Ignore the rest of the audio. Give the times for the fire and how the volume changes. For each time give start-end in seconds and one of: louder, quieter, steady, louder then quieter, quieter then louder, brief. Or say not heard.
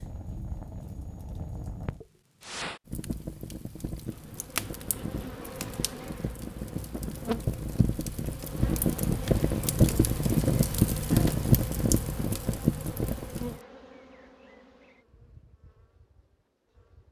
0.0-13.6 louder.